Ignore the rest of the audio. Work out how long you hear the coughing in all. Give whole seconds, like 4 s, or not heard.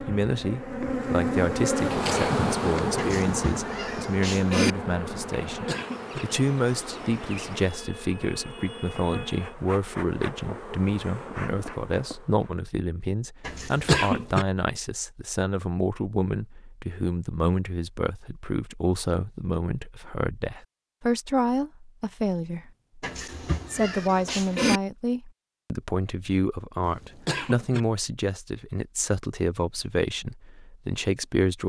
3 s.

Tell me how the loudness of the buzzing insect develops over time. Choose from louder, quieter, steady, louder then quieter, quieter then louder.
quieter.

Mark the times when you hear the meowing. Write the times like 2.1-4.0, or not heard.
3.0-4.8, 13.4-13.9, 23.0-24.8.